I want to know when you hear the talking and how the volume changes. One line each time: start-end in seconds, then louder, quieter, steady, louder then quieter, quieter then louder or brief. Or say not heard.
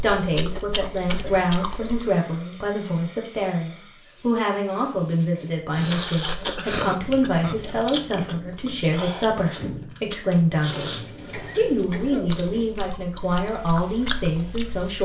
0.0-15.0 steady.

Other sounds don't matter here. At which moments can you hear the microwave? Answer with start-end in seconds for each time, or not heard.
not heard.